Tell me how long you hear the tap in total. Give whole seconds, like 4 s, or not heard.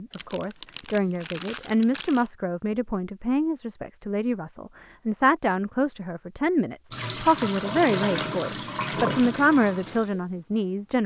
4 s.